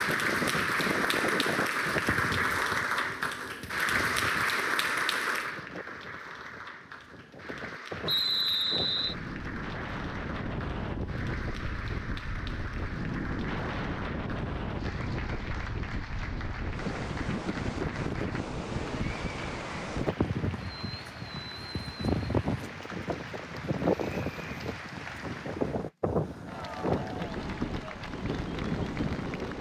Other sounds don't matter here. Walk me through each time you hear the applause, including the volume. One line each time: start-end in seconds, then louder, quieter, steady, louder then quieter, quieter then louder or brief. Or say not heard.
0.0-29.5 quieter.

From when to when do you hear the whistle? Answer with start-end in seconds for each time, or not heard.
8.1-9.2.